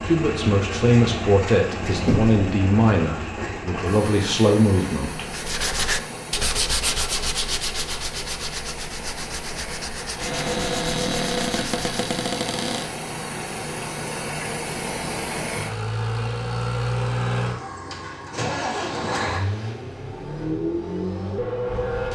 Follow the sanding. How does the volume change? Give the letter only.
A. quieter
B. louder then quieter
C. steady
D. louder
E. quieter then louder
A.